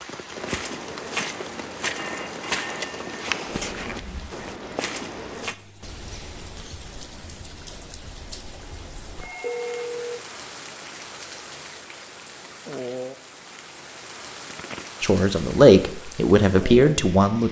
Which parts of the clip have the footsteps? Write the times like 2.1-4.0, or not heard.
0.3-5.5.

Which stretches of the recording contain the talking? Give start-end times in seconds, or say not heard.
15.0-17.4.